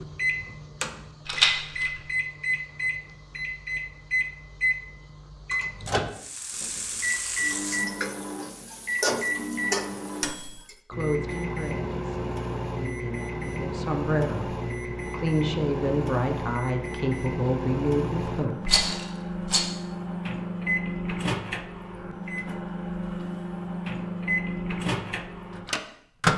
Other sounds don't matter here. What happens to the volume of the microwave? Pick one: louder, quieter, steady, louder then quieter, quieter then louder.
steady.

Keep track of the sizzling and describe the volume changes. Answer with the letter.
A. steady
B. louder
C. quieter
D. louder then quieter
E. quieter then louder
E.